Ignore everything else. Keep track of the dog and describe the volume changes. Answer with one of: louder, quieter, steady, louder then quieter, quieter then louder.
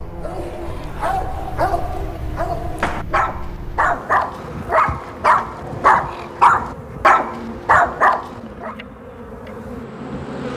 louder.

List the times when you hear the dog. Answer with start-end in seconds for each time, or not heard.
0.0-8.8.